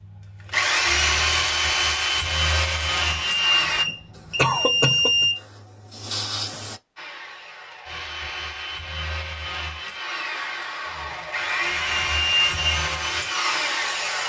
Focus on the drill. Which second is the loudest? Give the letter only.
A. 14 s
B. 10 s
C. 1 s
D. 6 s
C.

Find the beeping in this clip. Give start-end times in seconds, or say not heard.
3.0-5.4, 11.8-12.8.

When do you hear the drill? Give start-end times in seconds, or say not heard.
0.0-3.9, 7.0-14.2.